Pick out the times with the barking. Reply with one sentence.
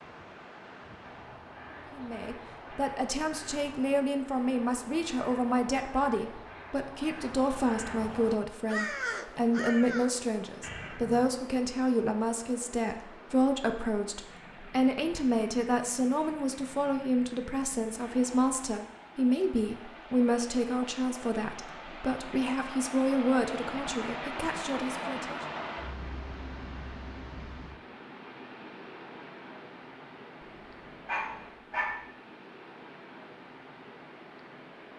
You can hear the barking from 30.4 to 31.9 s.